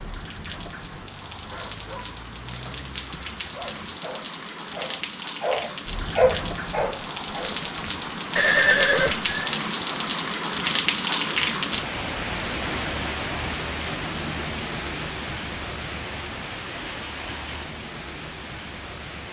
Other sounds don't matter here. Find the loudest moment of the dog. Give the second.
6 s.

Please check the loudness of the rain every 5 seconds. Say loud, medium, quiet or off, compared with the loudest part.
medium, loud, loud, medium.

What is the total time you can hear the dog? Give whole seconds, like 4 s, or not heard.
7 s.